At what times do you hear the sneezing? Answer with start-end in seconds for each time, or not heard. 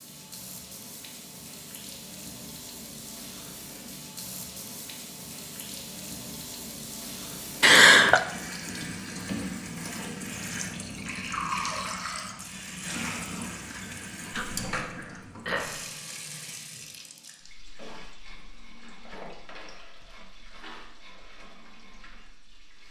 7.6-8.2, 14.3-15.8.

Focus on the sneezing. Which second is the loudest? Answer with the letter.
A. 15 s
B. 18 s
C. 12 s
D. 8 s
D.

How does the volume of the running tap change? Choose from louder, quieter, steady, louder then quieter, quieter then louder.
louder then quieter.